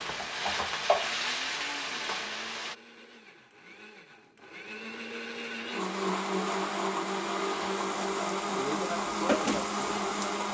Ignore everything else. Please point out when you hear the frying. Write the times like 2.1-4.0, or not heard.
0.0-2.8, 5.8-10.4.